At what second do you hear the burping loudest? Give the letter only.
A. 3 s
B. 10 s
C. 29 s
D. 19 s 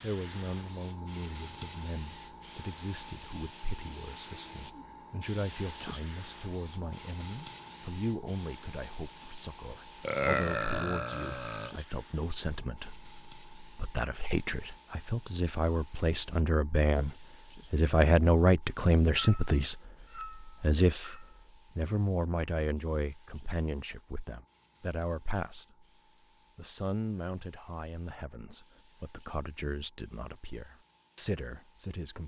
B.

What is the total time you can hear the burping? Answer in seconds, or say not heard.
2 s.